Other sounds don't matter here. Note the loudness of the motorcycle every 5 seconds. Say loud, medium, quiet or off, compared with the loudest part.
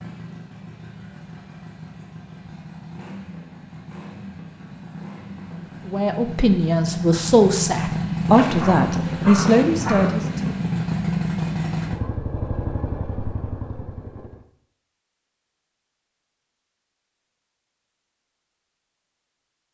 quiet, loud, loud, off.